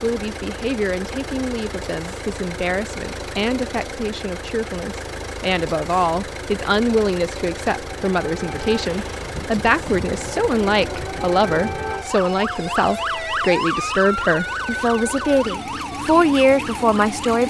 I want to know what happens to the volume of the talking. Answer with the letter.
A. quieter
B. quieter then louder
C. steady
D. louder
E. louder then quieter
D.